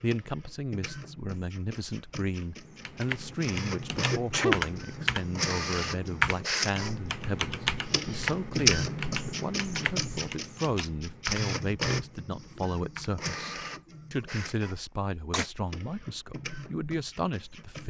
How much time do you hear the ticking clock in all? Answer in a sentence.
You can't hear the ticking clock here.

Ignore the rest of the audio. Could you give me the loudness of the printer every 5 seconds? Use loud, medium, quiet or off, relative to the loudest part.
medium, loud, medium, quiet.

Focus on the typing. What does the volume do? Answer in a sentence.
The volume of the typing goes down.